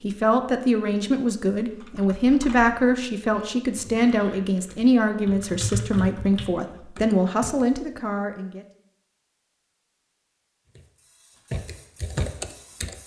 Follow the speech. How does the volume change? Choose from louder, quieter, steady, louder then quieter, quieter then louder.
steady.